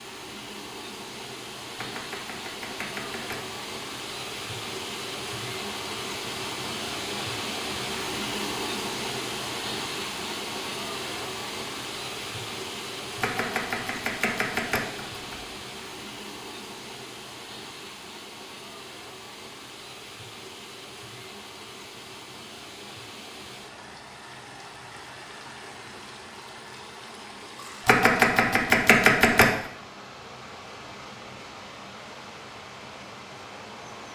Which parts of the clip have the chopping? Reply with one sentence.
You can hear the chopping from 1.8 to 3.4 s, from 13.2 to 15.4 s and from 27.9 to 29.4 s.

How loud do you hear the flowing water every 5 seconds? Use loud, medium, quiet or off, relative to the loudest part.
medium, loud, loud, medium, medium, medium, medium.